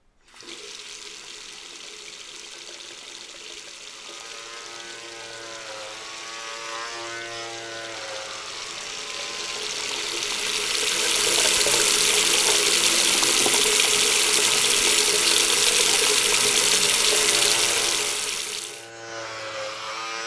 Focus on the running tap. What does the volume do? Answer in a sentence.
The volume of the running tap goes up.